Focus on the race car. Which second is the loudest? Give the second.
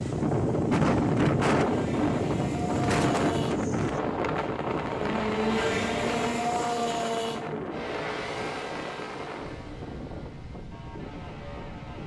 6 s.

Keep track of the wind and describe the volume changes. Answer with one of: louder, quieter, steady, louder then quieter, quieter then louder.
quieter.